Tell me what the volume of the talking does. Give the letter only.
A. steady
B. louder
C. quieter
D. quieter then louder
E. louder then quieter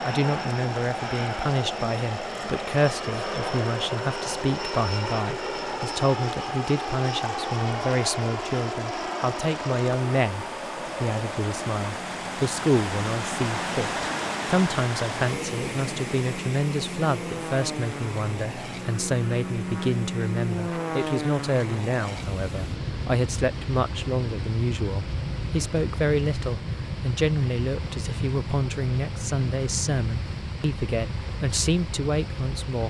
A.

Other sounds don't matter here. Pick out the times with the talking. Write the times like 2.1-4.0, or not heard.
0.0-32.8.